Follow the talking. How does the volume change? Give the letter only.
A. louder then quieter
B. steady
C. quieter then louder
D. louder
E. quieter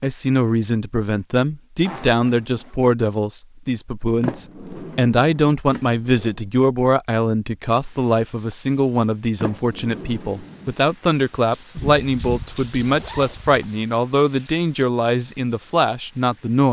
B.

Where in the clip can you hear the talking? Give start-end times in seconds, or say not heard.
0.0-16.6.